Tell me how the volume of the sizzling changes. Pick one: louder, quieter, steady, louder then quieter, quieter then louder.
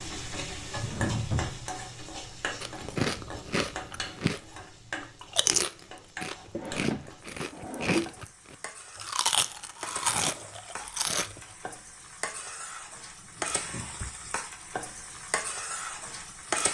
quieter then louder.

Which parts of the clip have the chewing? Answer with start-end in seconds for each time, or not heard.
2.6-4.4, 5.0-11.4.